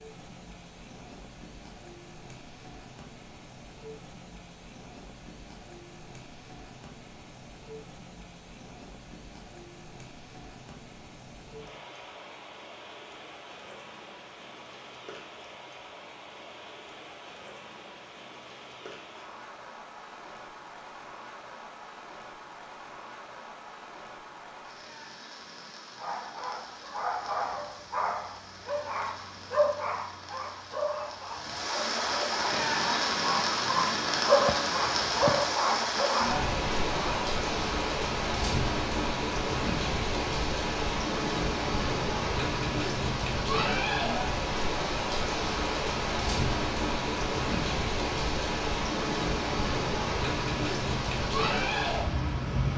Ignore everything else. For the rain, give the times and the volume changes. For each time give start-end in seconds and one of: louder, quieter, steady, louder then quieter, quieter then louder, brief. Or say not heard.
0.0-52.7 louder.